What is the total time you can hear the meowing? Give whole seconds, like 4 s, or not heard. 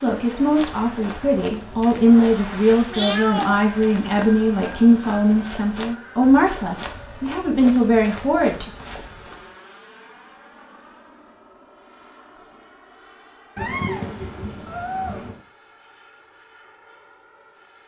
3 s.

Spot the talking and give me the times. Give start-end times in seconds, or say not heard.
0.0-8.7.